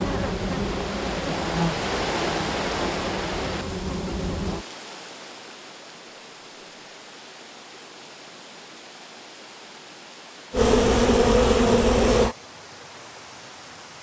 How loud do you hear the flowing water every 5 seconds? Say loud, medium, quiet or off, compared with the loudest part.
loud, quiet, quiet.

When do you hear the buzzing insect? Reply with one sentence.
You can hear the buzzing insect from 0.0 to 4.7 s and from 10.5 to 12.3 s.